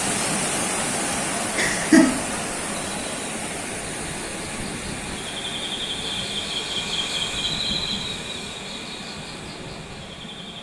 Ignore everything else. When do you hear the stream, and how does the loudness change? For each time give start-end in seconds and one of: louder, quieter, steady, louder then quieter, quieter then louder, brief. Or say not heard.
0.0-10.5 quieter.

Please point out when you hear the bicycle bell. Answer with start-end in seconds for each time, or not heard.
not heard.